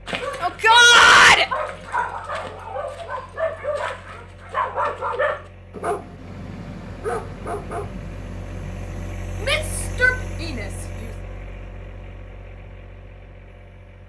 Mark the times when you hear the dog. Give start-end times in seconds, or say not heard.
0.1-9.2.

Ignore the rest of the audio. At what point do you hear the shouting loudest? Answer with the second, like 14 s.
1 s.